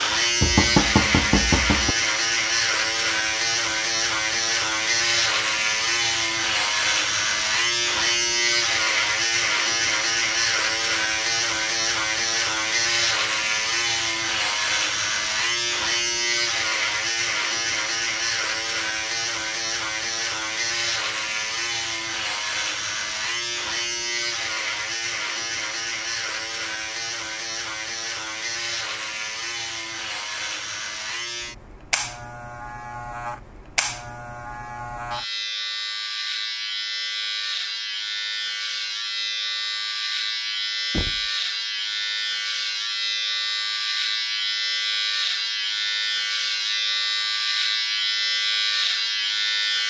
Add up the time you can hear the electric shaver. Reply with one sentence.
You can hear the electric shaver for 50 seconds altogether.